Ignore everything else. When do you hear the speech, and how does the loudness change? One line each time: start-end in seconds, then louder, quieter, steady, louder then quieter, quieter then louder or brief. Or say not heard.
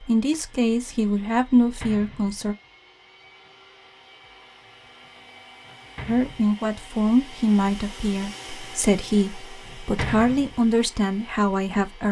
0.0-2.5 brief
6.0-12.0 steady.